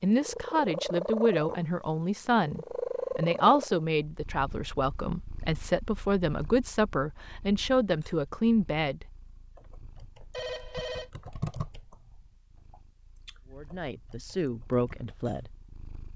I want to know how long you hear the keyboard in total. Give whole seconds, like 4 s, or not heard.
6 s.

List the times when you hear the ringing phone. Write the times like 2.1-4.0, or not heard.
10.3-11.1.